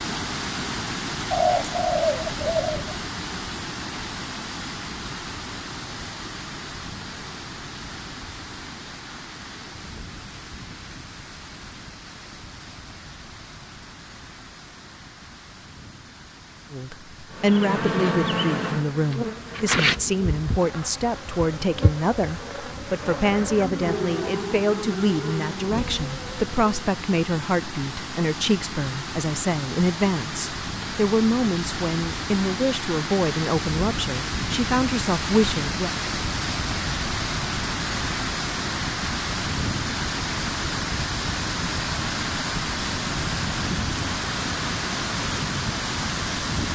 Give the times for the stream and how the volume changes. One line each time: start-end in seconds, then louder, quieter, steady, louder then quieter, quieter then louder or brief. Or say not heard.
0.0-46.7 quieter then louder.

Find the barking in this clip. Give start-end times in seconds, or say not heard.
not heard.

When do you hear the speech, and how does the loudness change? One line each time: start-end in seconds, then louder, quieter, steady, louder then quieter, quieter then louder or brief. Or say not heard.
16.7-35.9 steady.